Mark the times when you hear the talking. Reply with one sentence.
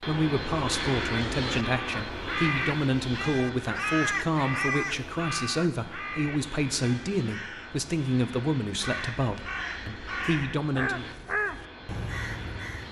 The talking can be heard from 0.1 to 11.1 s.